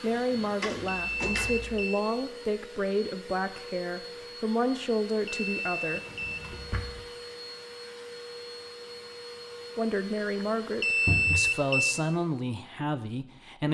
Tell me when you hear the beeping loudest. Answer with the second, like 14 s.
11 s.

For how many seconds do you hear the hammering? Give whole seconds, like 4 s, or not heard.
not heard.